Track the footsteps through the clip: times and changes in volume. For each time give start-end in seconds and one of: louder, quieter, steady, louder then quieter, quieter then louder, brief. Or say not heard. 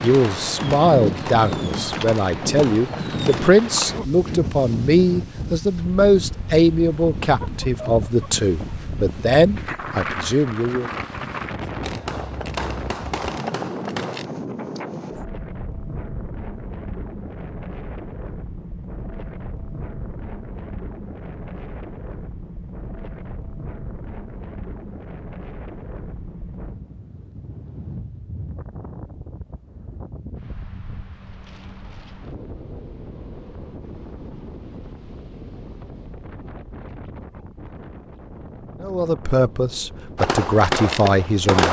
not heard.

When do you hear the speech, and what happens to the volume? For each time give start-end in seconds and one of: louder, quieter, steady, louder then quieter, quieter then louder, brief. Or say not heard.
0.0-10.9 steady
38.8-41.6 brief.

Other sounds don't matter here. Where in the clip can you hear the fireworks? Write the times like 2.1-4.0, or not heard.
0.1-3.5, 11.8-14.2, 40.1-41.6.